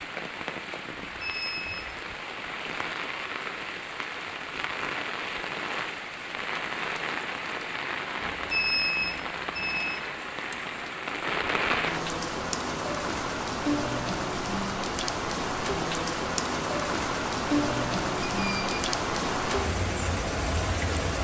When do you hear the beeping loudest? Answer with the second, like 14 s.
9 s.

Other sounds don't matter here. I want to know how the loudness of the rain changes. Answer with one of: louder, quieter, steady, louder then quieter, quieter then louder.
louder.